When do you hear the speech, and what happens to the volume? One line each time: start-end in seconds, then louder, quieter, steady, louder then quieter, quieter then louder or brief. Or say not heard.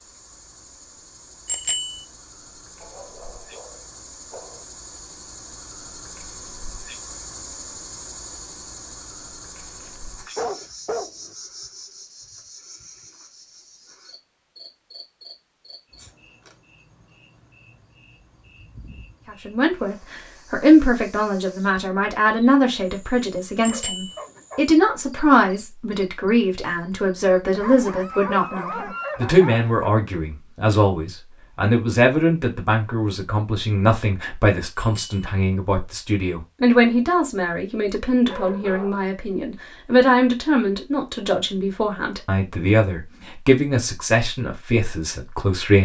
19.3-45.7 steady.